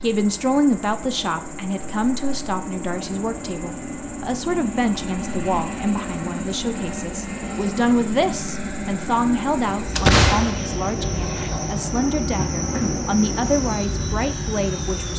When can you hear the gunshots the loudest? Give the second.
10 s.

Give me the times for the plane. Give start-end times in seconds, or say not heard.
0.0-15.1.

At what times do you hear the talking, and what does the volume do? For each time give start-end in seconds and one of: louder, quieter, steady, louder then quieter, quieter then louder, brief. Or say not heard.
0.0-15.1 steady.